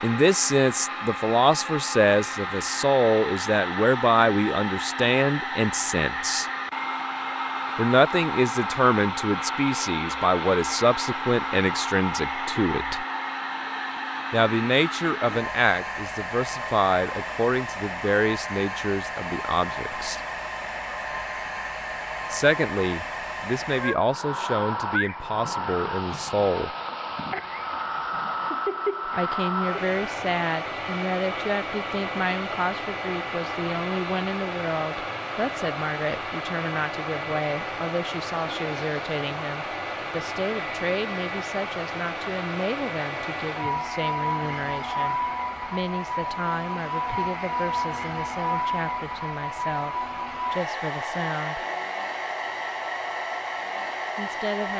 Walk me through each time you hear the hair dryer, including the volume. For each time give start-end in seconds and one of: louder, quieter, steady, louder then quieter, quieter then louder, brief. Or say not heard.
0.0-54.7 steady.